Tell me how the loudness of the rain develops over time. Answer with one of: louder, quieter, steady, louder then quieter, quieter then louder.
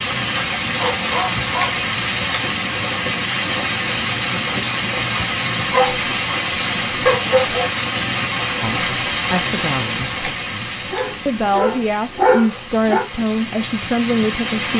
quieter.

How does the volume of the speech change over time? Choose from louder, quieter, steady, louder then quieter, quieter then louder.
quieter then louder.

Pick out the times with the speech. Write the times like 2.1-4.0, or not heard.
8.6-14.7.